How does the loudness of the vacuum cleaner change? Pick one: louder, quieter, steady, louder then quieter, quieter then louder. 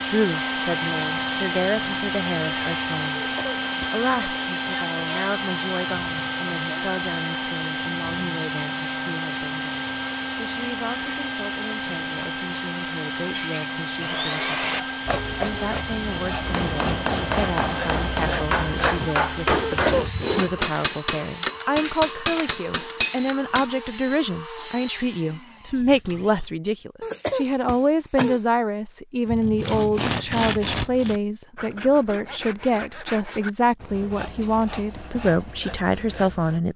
quieter.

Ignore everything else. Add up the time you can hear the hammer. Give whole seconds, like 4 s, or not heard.
7 s.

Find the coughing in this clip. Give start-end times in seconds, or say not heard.
3.3-4.0, 19.6-20.1, 27.0-28.4.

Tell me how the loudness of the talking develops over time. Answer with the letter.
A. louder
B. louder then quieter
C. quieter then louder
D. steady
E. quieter
C.